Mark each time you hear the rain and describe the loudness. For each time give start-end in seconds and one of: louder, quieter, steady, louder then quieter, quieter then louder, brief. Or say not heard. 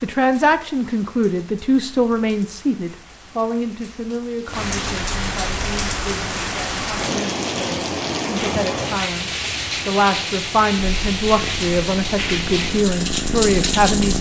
0.0-14.1 louder.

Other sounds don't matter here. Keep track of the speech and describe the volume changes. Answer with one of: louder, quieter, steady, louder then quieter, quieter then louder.
quieter then louder.